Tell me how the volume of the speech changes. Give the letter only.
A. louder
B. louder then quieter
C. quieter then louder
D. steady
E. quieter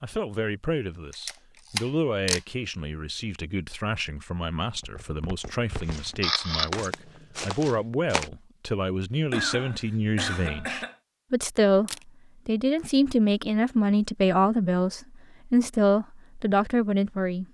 A.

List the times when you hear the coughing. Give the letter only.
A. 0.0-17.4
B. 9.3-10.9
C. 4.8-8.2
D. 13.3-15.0
B.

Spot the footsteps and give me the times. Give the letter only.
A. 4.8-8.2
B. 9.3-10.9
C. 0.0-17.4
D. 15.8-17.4
A.